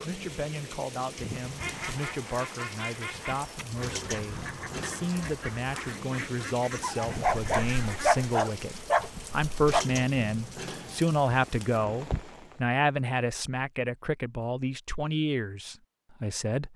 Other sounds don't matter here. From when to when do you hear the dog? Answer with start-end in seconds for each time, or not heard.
7.0-9.8.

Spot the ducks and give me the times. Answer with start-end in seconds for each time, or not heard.
1.6-8.2.